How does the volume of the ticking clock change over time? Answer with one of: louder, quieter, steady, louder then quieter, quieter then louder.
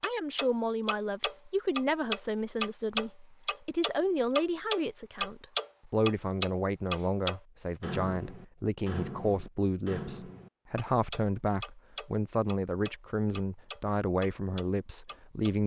quieter.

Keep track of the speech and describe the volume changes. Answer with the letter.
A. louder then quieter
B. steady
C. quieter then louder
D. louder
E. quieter
B.